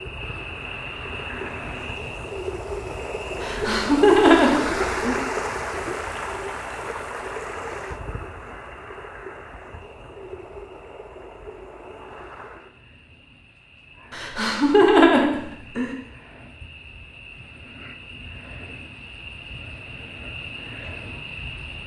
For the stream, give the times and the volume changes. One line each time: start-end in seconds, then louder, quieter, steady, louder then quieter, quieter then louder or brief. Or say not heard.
0.0-12.7 louder then quieter.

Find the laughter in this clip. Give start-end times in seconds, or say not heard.
3.4-5.2, 14.1-15.9.